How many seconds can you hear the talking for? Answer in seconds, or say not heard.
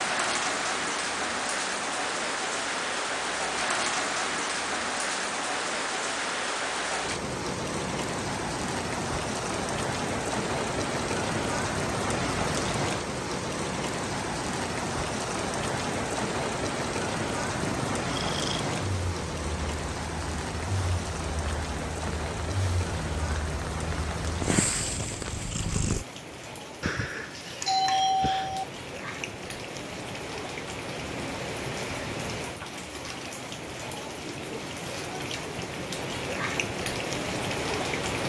not heard.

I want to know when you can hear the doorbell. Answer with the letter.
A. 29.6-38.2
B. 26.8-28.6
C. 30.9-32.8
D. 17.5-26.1
B.